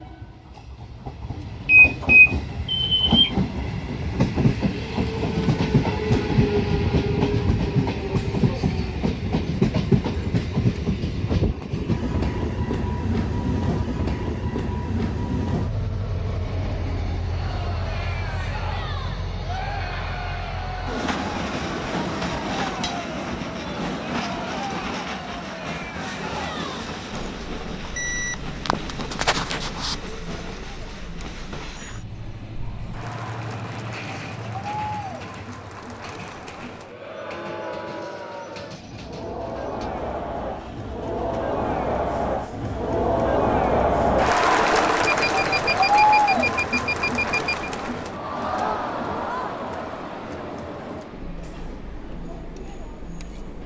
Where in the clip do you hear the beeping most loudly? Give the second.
2 s.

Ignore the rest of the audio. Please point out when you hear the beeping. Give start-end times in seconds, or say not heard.
1.6-3.3, 27.9-29.9, 45.0-47.7.